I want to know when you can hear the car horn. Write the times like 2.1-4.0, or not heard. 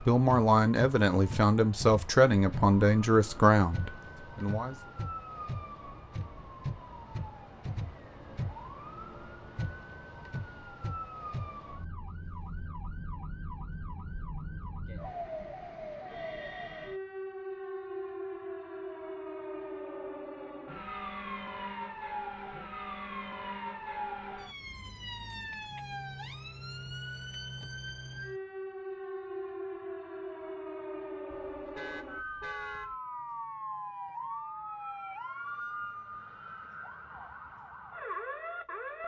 31.4-33.0.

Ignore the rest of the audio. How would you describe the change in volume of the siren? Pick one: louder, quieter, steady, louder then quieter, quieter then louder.
steady.